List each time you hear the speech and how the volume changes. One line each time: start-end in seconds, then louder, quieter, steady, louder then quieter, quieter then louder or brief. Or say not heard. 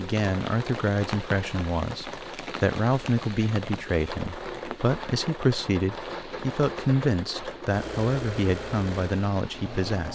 0.0-10.1 steady.